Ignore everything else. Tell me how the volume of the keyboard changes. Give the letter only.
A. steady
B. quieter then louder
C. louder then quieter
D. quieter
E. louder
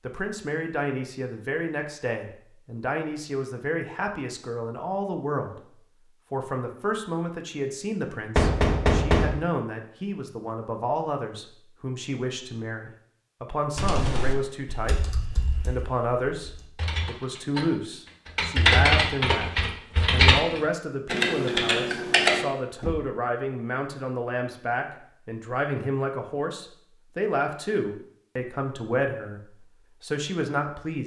B.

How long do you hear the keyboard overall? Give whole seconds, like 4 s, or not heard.
8 s.